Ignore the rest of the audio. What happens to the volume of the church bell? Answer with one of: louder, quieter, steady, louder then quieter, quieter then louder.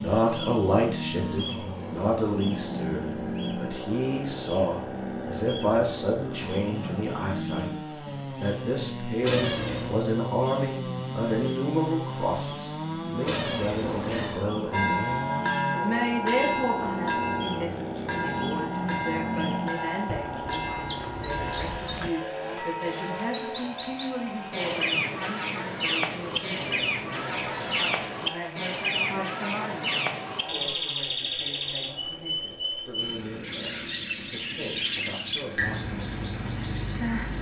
quieter.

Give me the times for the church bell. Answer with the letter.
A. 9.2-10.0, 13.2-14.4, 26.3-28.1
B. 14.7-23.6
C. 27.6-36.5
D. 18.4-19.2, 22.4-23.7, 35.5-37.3
B.